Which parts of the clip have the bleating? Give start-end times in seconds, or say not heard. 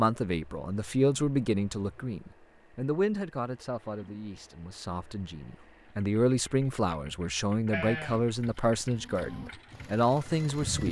7.7-10.8.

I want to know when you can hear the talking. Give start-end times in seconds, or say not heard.
0.0-10.8.